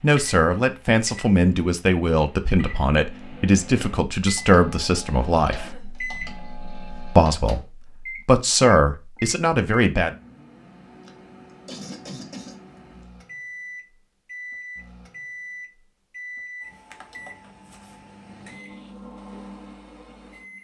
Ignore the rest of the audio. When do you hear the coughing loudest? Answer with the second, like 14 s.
12 s.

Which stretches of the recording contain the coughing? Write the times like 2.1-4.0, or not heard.
5.5-6.0, 11.1-12.6.